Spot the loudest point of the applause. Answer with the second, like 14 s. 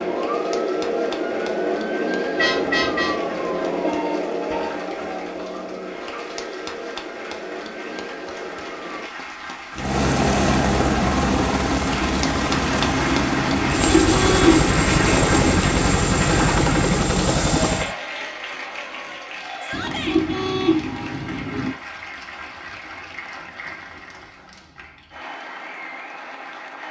15 s.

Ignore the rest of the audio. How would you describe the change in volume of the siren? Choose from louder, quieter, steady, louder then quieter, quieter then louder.
quieter.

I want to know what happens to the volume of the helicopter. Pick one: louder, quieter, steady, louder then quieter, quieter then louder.
steady.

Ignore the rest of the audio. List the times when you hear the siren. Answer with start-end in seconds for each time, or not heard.
0.0-9.1.